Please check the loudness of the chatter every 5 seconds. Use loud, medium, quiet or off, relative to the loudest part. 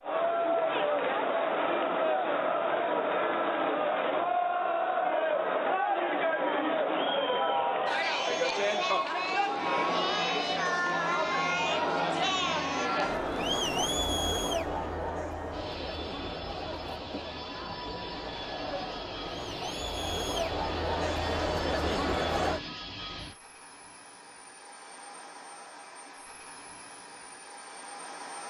loud, loud, loud, medium, loud, off.